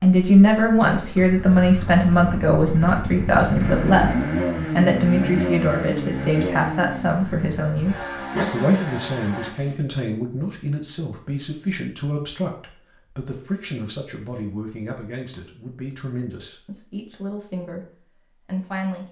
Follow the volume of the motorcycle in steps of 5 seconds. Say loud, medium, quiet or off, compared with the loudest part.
loud, loud, off, off.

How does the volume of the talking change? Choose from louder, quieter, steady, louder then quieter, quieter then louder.
quieter.